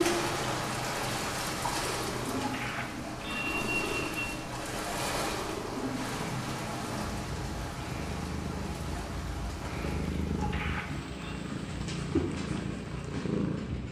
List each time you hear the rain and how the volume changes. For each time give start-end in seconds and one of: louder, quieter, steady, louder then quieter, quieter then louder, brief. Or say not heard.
0.0-13.8 quieter.